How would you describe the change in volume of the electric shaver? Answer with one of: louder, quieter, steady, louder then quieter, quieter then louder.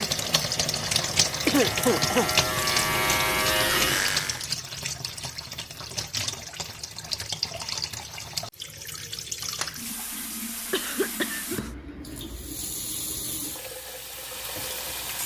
louder.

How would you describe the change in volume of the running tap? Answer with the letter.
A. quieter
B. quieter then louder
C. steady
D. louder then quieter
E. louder
A.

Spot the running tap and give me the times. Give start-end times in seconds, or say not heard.
0.0-15.2.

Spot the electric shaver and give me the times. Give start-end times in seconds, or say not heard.
0.0-4.5.